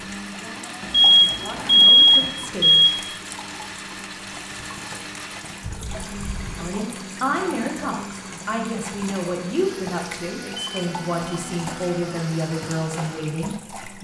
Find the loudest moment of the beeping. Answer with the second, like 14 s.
2 s.